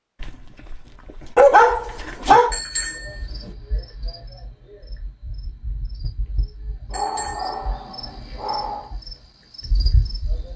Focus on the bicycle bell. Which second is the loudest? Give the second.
3 s.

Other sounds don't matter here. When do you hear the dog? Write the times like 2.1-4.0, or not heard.
0.2-2.5, 6.9-8.9.